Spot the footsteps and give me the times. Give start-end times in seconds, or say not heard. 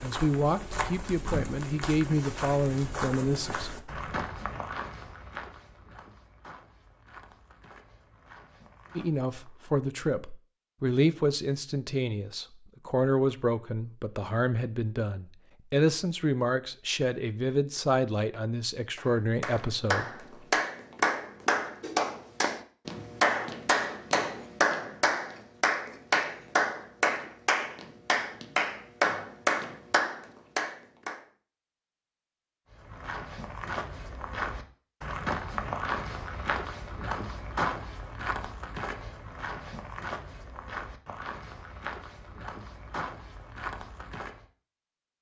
0.0-9.7, 32.6-44.5.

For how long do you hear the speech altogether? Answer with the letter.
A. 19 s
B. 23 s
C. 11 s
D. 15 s
D.